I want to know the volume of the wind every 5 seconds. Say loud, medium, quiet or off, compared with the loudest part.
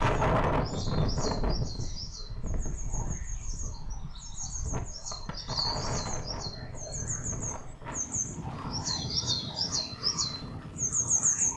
loud, medium, medium.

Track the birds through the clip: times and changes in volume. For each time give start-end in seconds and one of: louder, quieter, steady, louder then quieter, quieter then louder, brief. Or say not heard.
0.0-11.5 louder.